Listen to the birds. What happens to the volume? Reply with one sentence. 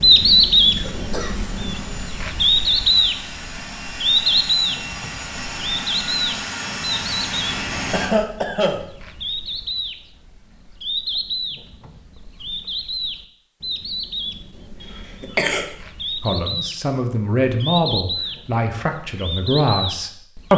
The loudness of the birds goes down.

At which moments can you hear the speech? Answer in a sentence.
The speech can be heard from 16.2 to 20.5 s.